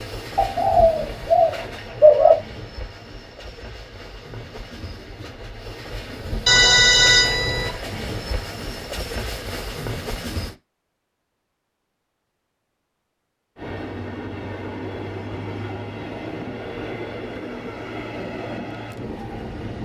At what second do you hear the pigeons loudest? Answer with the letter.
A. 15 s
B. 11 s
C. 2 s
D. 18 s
C.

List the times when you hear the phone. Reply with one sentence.
The phone can be heard from 6.5 to 7.7 s.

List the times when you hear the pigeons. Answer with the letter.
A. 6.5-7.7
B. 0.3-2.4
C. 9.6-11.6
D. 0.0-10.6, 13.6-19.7
B.